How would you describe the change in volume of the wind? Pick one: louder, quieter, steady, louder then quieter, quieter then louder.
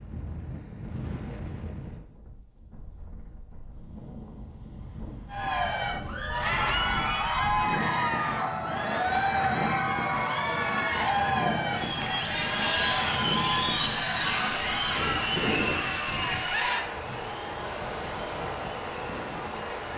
louder.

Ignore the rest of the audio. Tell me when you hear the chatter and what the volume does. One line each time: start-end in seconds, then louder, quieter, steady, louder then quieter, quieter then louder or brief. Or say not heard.
5.3-19.9 quieter.